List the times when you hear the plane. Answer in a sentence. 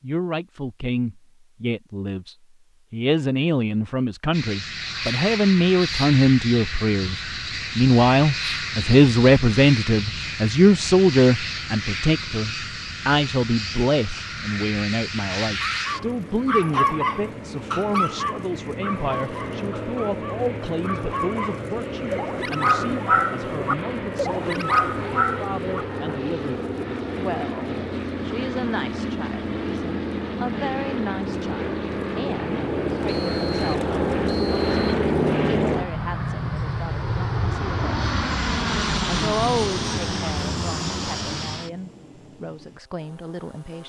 You can hear the plane from 4.3 to 43.8 s.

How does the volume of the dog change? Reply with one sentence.
The volume of the dog goes down, then up.